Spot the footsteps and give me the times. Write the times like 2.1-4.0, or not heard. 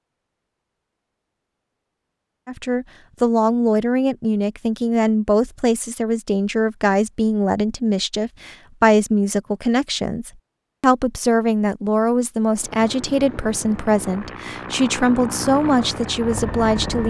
not heard.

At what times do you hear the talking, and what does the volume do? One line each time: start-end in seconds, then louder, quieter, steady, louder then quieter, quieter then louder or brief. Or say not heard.
2.5-17.0 steady.